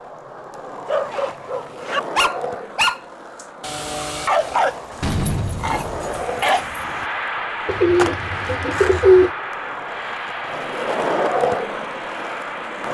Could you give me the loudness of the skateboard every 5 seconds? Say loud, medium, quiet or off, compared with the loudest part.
medium, medium, loud.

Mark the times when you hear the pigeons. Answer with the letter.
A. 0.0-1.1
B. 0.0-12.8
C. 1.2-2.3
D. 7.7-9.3
D.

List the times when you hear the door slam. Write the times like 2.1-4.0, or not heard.
5.0-6.1.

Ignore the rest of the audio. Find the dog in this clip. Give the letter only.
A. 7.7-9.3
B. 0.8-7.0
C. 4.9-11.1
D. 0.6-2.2
B.